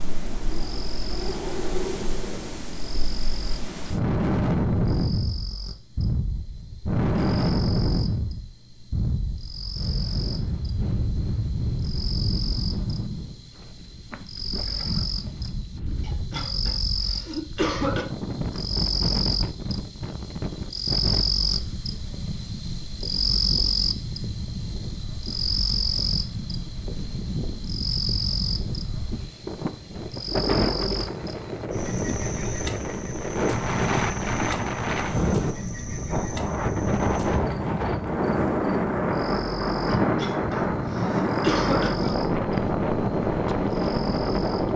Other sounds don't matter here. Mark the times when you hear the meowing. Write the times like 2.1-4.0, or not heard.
not heard.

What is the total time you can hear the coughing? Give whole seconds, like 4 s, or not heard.
4 s.